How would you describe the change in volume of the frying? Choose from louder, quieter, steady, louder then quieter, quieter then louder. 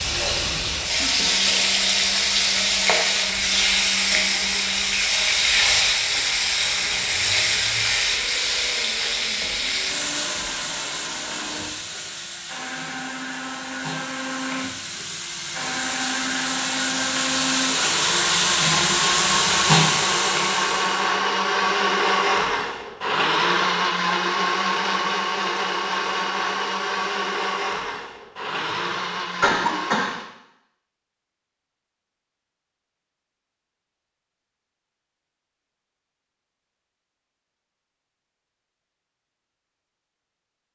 quieter then louder.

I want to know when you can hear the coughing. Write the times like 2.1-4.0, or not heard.
28.6-30.1.